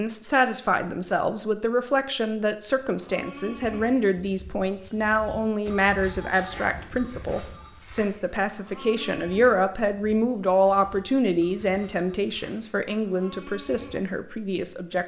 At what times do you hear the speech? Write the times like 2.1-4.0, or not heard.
0.0-15.0.